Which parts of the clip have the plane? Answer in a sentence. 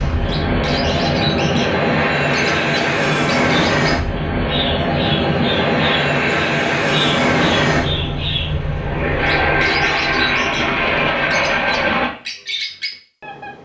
The plane can be heard from 0.0 to 12.1 s.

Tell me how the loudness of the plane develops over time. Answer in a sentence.
The loudness of the plane stays about the same.